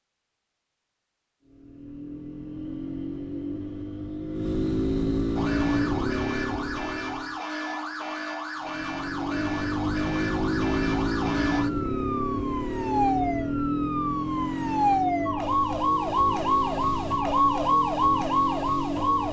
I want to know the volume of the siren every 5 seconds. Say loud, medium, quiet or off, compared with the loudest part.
off, medium, medium, loud.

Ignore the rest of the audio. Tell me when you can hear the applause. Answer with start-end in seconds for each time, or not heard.
not heard.